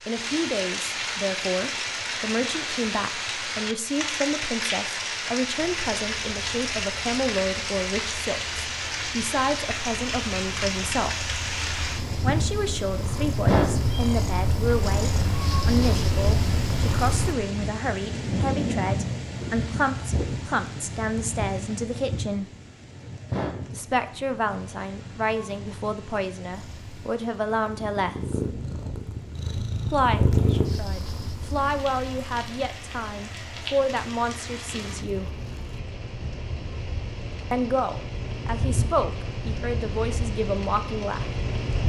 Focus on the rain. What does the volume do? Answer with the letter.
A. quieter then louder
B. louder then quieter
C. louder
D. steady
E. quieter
A.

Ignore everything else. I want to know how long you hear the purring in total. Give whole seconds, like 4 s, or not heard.
21 s.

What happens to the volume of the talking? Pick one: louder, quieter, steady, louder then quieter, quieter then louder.
steady.